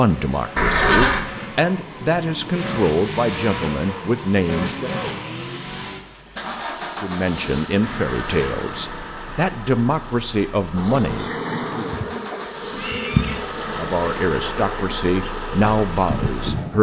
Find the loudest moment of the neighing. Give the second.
1 s.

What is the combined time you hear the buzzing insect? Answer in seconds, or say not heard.
6 s.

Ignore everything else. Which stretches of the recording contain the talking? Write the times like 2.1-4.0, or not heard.
0.0-4.9, 7.0-11.8, 13.8-16.7.